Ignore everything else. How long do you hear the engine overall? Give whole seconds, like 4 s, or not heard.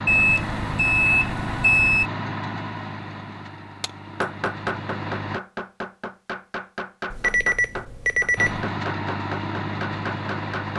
8 s.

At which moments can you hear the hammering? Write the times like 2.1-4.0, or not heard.
3.8-10.7.